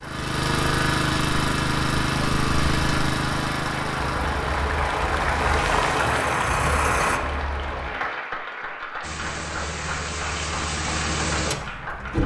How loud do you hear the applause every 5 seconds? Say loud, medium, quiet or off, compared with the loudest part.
loud, loud, medium.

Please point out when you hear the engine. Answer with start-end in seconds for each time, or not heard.
0.0-7.2, 9.0-12.2.